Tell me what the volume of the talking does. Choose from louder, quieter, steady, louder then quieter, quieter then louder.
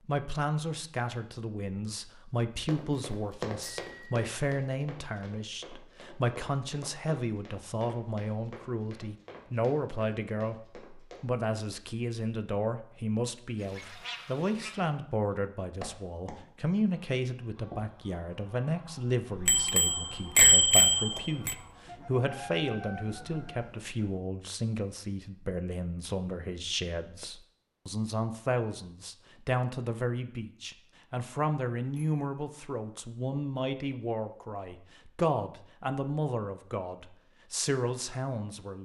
steady.